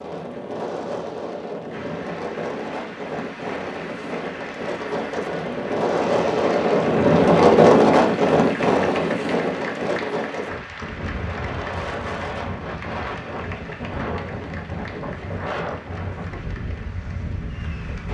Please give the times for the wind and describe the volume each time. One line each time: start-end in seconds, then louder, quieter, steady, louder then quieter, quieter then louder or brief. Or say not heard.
0.0-18.0 louder then quieter.